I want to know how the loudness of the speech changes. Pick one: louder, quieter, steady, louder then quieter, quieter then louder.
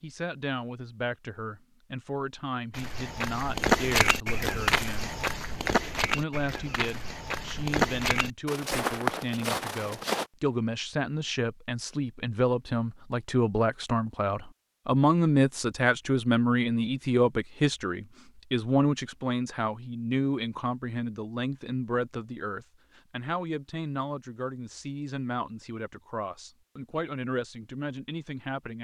louder then quieter.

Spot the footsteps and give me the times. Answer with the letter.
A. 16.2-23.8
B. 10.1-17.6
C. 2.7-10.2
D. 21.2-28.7
C.